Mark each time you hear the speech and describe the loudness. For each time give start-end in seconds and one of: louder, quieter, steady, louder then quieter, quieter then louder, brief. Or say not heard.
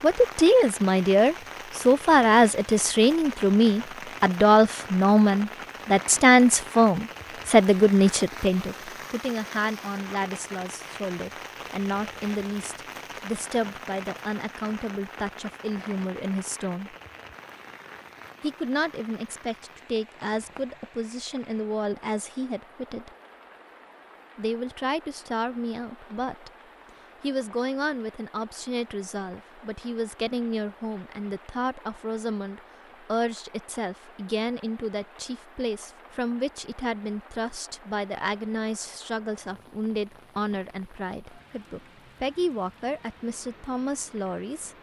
0.0-16.9 quieter
18.4-23.1 steady
24.4-26.5 brief
27.2-44.7 steady.